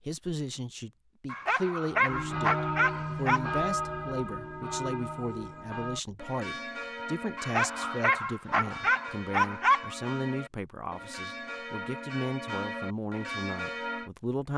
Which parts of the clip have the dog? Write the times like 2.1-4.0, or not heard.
1.3-3.5, 7.3-9.9.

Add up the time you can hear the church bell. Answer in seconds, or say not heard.
12 s.